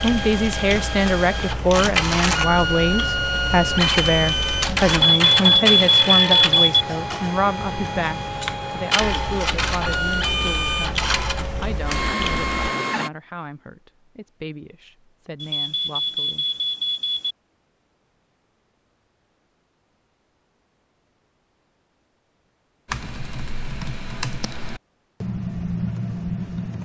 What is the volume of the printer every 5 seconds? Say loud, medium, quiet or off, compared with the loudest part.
loud, loud, loud, off, off, off.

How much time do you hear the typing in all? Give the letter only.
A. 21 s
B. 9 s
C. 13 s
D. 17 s
C.